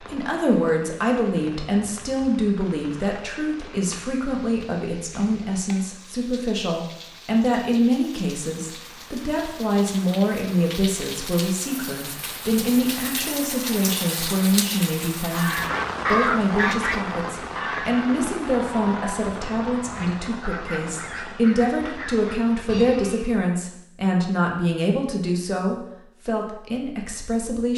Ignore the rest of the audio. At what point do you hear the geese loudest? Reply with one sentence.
The volume of the geese peaks at 16 seconds.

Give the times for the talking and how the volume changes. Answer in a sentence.
The talking can be heard from 0.0 to 27.7 s, at a steady volume.